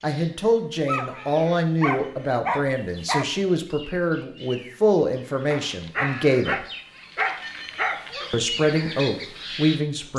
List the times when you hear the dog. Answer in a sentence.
The dog can be heard from 0.8 to 3.4 s and from 5.5 to 8.3 s.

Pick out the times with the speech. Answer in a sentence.
You can hear the speech from 0.0 to 6.7 s and from 8.3 to 10.1 s.